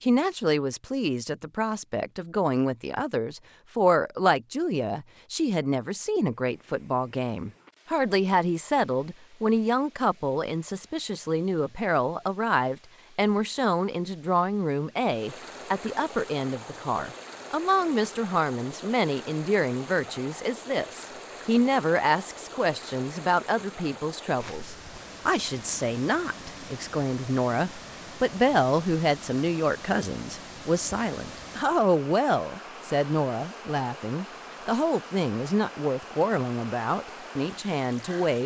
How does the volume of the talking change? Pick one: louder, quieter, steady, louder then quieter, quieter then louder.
steady.